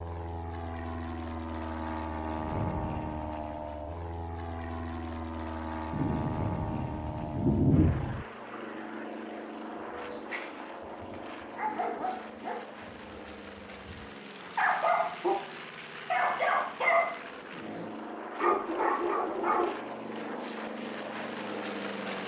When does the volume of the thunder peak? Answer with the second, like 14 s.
8 s.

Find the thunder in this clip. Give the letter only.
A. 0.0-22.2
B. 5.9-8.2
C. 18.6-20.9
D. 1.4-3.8
B.